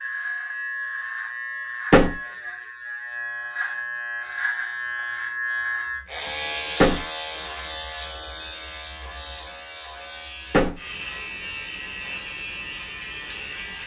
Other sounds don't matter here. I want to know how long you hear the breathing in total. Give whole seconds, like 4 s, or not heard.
not heard.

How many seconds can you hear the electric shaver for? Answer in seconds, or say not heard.
14 s.